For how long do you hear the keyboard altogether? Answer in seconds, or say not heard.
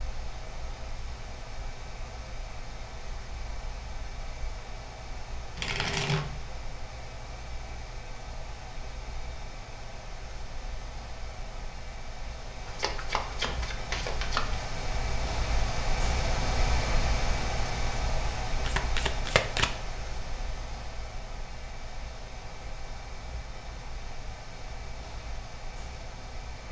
not heard.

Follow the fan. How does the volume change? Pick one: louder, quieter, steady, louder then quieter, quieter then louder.
louder then quieter.